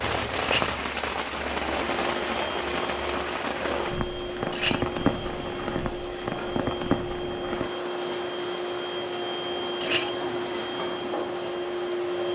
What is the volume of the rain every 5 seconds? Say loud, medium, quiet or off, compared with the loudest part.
loud, loud, medium.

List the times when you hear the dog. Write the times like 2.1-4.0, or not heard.
not heard.